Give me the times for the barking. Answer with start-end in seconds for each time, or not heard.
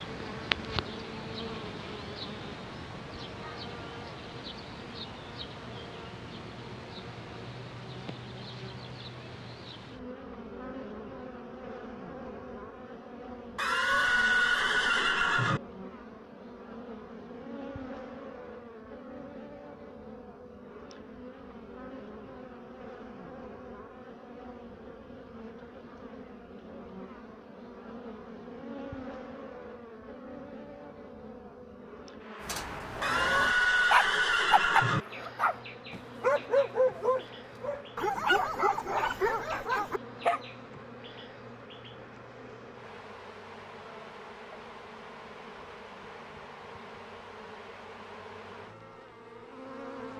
32.4-40.4.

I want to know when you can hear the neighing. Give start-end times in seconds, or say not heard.
13.6-15.6, 33.0-35.0.